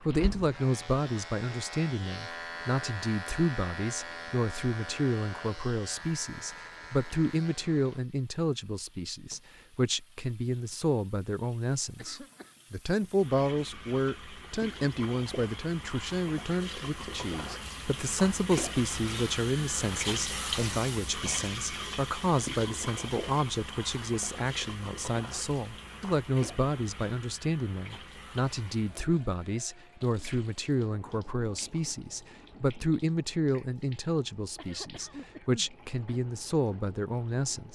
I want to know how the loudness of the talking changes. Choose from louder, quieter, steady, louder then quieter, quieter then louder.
steady.